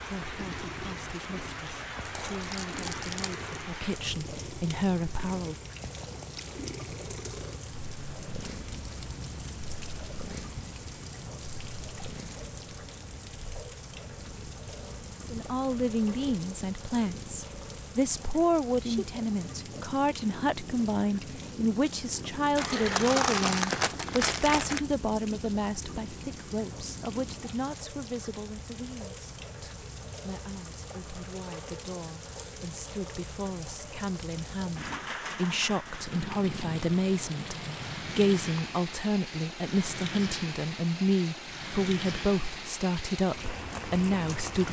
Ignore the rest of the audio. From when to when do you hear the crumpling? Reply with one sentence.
The crumpling can be heard from 2.0 to 3.5 s and from 22.6 to 24.9 s.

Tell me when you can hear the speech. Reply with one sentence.
You can hear the speech from 0.0 to 5.6 s, from 15.3 to 37.5 s and from 38.1 to 44.6 s.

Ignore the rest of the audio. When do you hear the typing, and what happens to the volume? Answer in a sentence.
You can't hear the typing here.